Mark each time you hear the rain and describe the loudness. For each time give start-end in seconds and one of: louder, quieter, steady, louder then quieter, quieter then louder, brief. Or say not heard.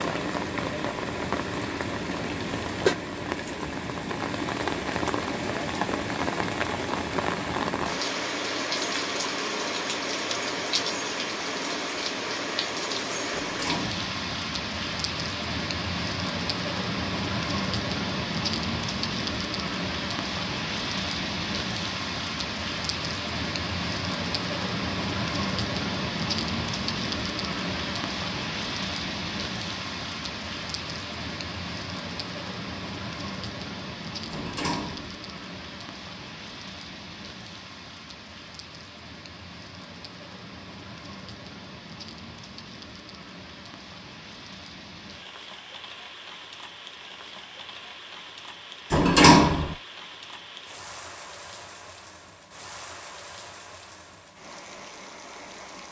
0.0-55.8 quieter.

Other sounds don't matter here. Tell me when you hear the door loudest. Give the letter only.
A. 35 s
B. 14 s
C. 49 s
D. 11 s
C.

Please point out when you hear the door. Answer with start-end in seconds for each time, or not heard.
13.3-14.0, 34.3-35.1, 48.9-49.8.